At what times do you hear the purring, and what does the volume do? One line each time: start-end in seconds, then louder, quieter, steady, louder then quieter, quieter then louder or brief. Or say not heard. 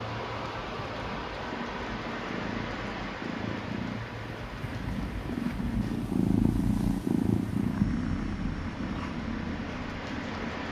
0.0-10.6 louder then quieter.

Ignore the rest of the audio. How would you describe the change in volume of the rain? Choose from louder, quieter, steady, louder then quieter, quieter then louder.
quieter then louder.